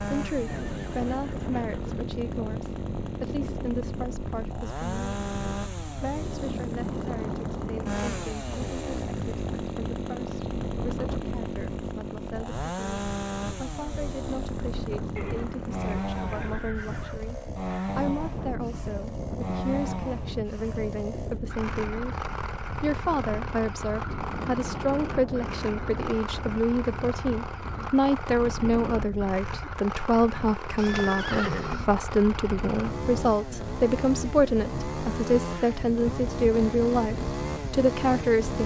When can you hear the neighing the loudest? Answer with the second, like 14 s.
31 s.